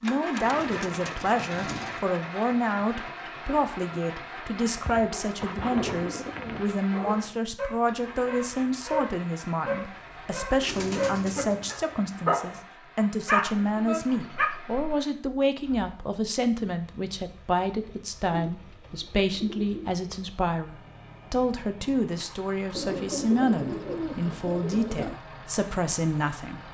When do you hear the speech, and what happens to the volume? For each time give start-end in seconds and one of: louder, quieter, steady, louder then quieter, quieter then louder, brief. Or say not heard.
0.0-26.6 steady.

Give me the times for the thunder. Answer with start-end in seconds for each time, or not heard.
not heard.